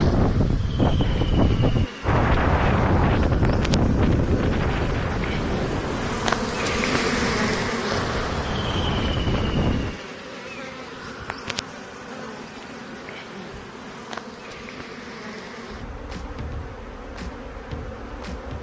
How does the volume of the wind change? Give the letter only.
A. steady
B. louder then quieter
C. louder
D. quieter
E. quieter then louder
E.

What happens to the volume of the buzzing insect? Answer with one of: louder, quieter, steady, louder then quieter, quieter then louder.
louder then quieter.